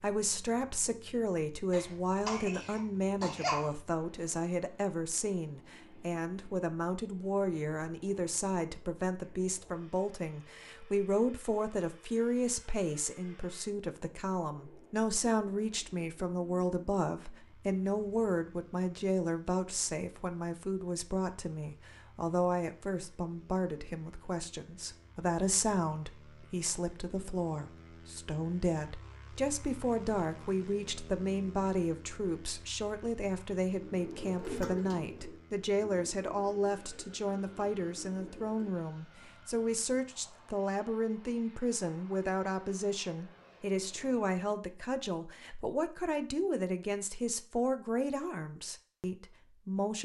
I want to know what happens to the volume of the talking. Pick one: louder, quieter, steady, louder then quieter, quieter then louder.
steady.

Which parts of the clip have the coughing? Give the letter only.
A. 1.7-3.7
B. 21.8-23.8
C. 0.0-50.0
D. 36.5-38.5
A.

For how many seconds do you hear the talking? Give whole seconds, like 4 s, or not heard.
50 s.